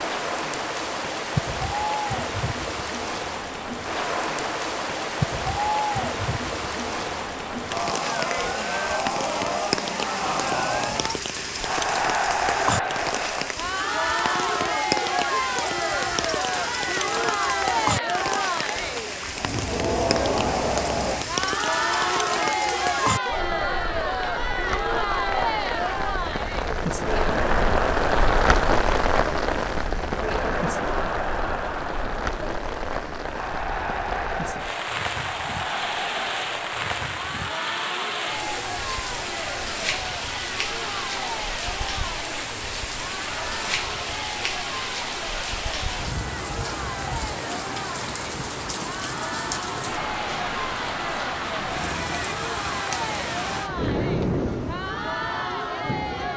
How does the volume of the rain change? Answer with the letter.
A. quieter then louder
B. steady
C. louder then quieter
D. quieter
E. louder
B.